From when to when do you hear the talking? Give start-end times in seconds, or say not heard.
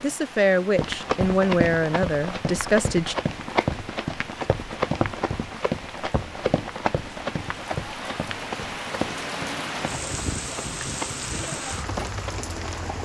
0.0-3.1.